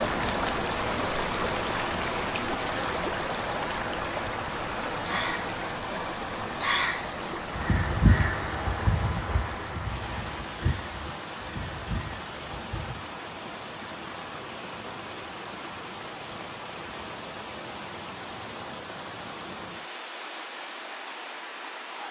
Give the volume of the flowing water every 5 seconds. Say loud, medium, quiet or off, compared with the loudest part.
loud, medium, medium, medium, medium.